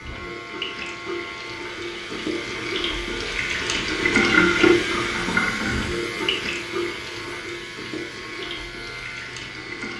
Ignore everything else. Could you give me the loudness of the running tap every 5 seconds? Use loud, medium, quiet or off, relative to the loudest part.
loud, medium.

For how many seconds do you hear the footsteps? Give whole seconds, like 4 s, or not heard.
not heard.